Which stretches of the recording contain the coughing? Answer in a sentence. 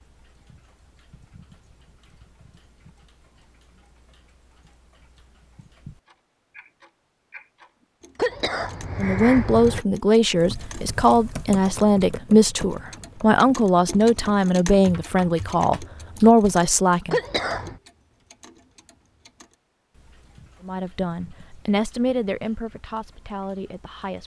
The coughing can be heard from 8.2 to 9.8 s and from 17.1 to 17.8 s.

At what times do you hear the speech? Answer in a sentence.
You can hear the speech from 8.9 to 17.2 s and from 20.6 to 24.2 s.